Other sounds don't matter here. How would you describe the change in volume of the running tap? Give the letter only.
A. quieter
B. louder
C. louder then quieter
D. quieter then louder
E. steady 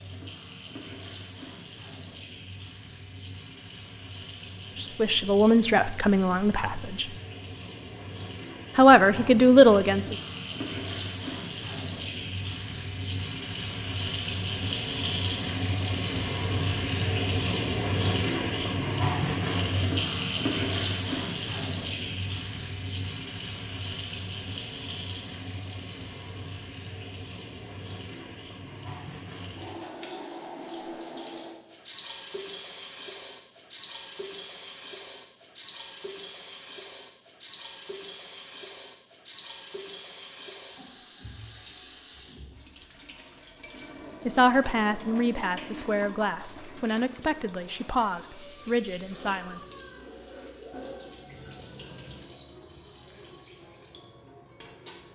C.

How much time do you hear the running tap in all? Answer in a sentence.
You can hear the running tap for 55 seconds altogether.